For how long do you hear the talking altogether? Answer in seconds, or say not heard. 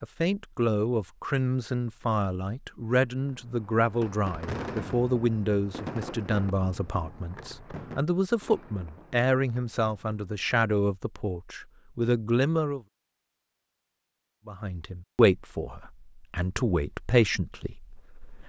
17 s.